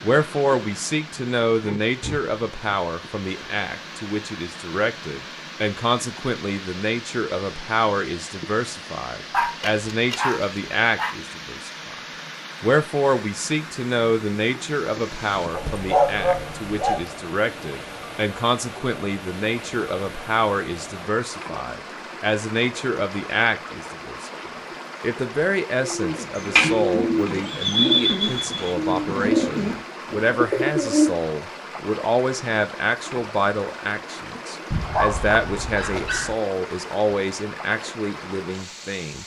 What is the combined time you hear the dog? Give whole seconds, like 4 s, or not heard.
5 s.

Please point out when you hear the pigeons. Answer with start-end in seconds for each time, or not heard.
25.8-31.1.